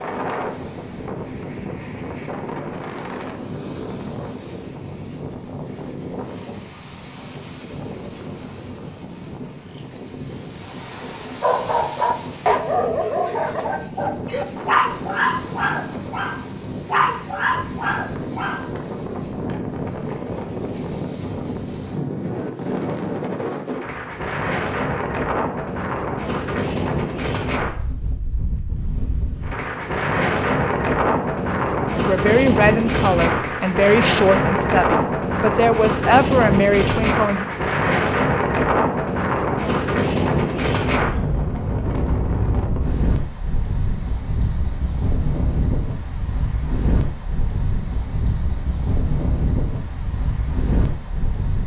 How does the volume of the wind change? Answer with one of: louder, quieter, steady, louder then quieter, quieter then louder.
louder then quieter.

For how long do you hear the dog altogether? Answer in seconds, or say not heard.
7 s.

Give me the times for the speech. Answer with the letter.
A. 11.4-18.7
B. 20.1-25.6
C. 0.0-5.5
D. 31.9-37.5
D.